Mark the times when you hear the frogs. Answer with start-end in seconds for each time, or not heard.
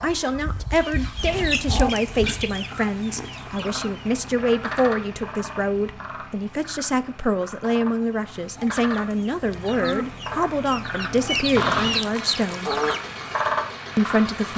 3.2-14.5.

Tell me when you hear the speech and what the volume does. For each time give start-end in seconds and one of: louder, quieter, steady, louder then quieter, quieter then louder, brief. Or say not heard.
0.0-12.8 steady
13.9-14.5 brief.